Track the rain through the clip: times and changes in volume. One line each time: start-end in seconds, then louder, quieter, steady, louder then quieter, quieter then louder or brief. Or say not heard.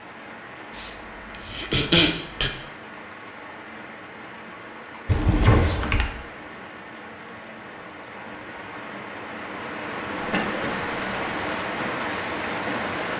0.0-13.1 louder.